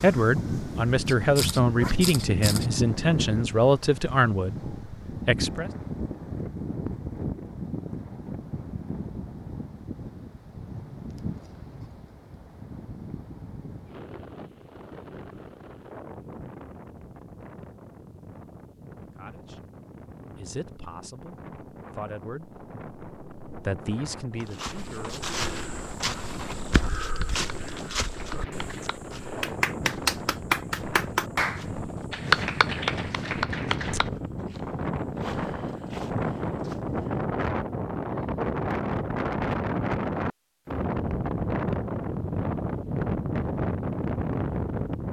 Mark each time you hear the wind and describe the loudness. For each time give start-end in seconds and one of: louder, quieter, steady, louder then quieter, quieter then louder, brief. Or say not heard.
0.0-45.0 quieter then louder.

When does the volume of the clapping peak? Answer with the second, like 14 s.
32 s.